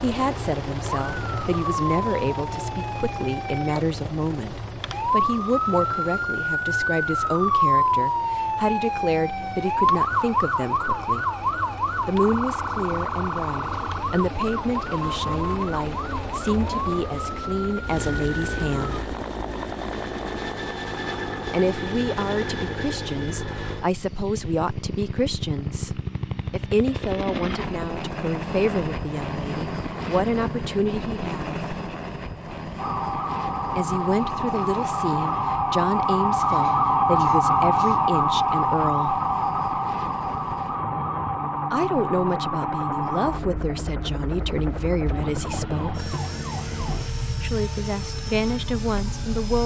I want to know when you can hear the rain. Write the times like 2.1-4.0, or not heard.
not heard.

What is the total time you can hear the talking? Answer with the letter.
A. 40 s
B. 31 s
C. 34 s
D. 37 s
A.